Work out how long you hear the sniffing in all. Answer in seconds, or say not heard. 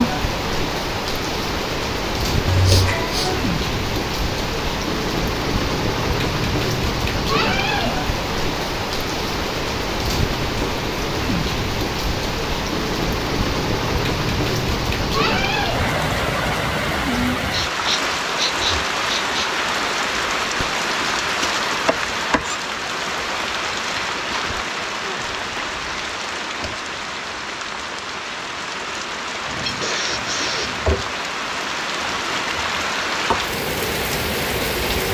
5 s.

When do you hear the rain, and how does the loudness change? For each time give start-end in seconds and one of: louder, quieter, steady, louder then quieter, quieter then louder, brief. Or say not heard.
0.0-35.1 steady.